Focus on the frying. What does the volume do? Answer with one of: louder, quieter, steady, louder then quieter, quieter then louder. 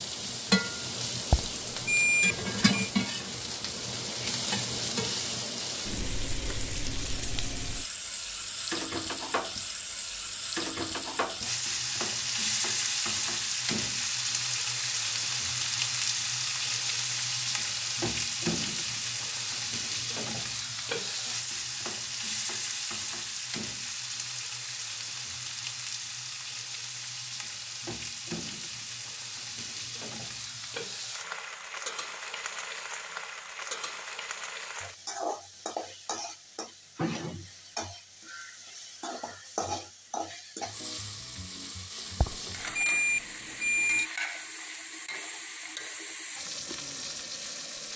quieter.